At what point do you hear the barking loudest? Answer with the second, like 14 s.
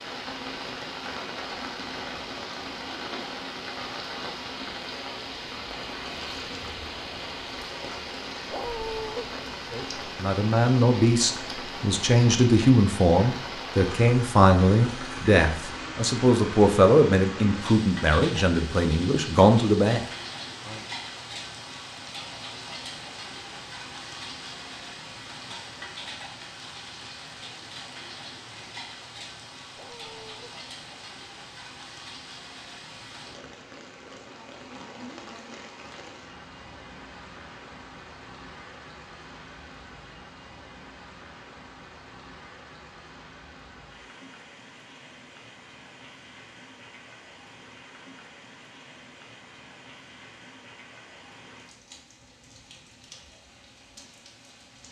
9 s.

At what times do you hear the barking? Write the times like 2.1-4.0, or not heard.
8.5-9.2, 29.8-30.5.